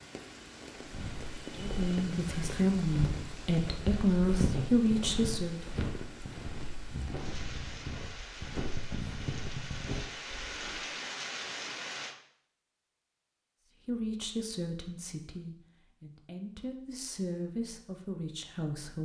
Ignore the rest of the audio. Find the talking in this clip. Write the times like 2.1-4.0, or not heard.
1.6-5.6, 13.8-19.0.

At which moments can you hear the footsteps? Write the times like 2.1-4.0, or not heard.
0.8-10.8.